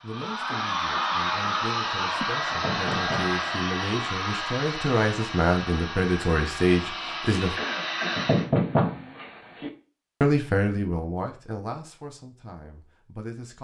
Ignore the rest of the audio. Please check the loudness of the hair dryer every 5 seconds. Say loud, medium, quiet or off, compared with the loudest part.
loud, medium, off.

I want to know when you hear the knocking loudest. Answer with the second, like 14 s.
9 s.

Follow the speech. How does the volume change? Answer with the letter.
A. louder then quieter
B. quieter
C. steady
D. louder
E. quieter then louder
A.